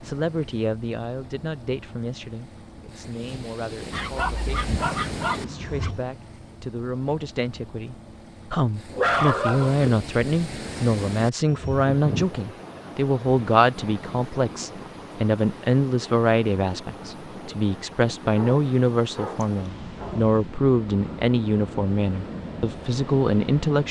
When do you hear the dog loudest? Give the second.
9 s.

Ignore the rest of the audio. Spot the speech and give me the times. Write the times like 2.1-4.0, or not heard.
0.0-23.8.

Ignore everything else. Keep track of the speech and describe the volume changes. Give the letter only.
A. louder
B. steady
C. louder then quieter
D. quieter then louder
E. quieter
A.